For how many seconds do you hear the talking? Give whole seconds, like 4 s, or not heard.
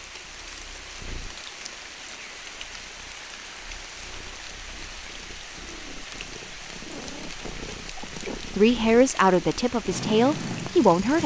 3 s.